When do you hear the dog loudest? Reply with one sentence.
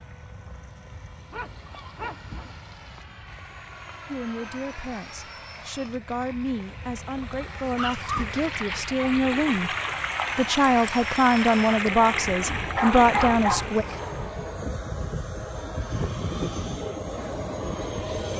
The volume of the dog peaks at 13 seconds.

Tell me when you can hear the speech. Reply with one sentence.
The speech can be heard from 4.0 to 9.7 s and from 10.3 to 13.8 s.